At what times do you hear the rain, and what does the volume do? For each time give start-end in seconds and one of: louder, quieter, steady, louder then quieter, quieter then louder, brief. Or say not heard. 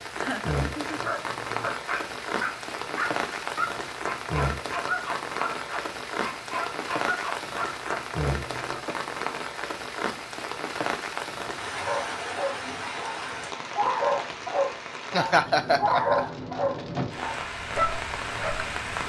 0.0-19.0 steady.